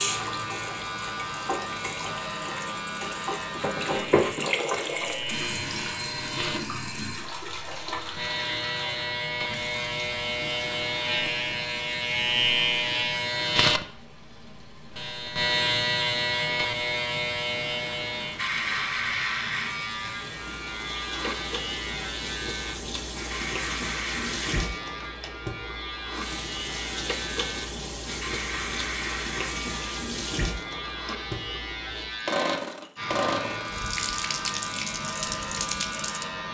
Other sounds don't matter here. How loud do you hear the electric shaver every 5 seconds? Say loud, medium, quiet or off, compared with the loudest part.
medium, medium, loud, loud, medium, medium, medium, medium.